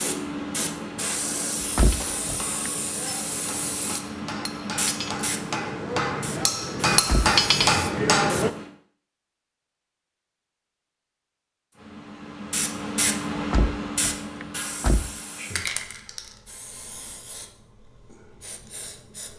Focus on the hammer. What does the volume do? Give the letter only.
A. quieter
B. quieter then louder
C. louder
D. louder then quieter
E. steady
C.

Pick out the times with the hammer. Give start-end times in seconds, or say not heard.
1.9-8.5.